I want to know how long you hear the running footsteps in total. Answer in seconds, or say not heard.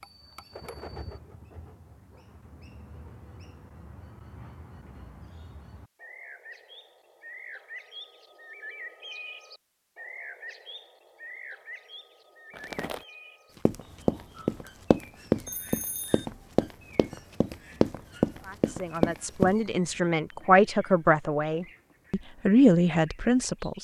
6 s.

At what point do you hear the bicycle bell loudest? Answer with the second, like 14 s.
16 s.